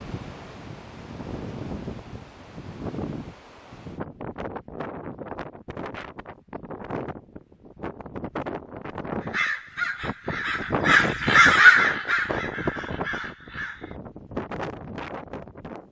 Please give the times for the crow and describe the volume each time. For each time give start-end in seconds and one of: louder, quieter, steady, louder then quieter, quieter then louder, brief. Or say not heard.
9.2-13.9 louder then quieter.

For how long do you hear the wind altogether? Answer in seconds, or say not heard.
16 s.